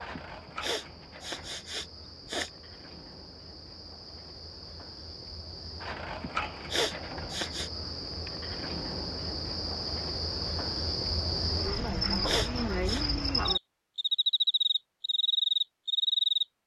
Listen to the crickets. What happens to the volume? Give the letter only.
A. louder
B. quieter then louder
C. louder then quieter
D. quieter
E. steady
A.